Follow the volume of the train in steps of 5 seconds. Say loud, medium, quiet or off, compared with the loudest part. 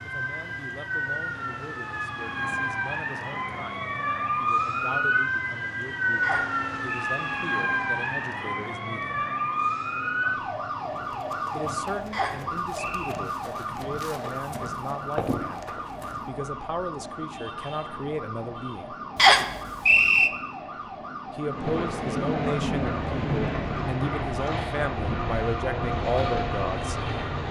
quiet, quiet, quiet, quiet, loud, loud.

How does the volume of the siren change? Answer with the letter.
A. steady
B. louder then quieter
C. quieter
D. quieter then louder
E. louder
C.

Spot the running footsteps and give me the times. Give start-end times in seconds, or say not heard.
10.9-16.2.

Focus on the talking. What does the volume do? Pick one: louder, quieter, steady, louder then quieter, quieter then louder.
louder.